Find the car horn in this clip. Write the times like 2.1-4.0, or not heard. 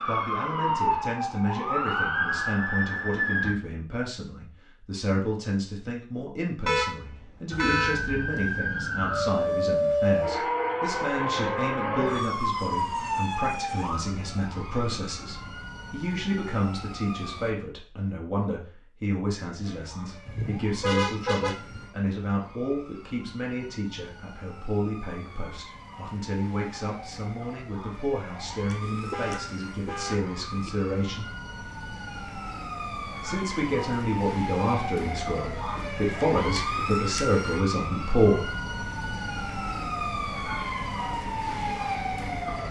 6.7-8.0, 20.2-21.9, 28.8-30.7.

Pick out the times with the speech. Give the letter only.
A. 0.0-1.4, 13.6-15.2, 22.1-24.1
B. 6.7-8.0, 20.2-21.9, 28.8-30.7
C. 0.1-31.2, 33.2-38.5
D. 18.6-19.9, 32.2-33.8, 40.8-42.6
C.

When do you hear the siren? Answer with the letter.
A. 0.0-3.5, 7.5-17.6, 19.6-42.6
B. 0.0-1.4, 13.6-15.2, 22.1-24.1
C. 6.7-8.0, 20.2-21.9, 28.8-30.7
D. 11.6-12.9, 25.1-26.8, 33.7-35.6
A.